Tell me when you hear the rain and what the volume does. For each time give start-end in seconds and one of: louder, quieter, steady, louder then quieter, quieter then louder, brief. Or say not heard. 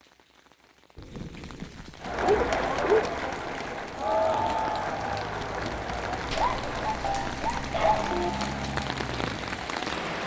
0.0-10.2 louder.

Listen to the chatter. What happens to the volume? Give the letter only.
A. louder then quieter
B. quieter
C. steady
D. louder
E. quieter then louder
B.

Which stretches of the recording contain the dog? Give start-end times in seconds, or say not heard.
0.9-3.0, 6.3-8.3.